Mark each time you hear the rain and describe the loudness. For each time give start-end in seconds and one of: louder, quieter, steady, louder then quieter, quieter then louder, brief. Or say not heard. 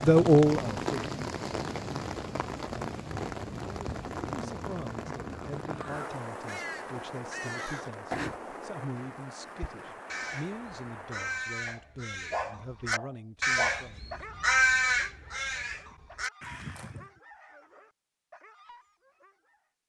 0.0-11.4 quieter.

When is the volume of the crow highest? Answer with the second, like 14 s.
15 s.